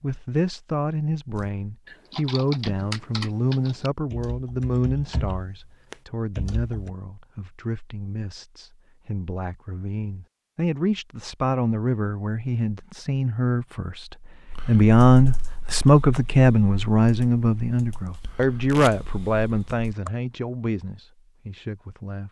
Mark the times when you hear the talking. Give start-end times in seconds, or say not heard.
0.0-22.2.